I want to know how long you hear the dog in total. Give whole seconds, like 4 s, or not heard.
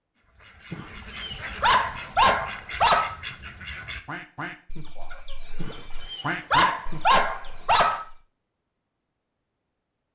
5 s.